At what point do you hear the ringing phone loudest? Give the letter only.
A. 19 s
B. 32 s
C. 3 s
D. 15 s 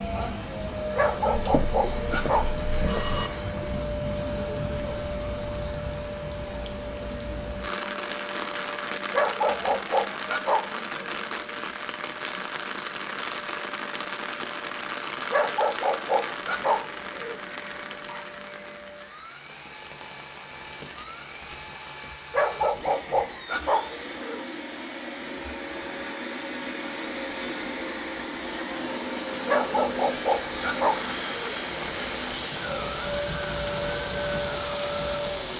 C.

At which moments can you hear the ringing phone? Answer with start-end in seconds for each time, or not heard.
1.3-3.3.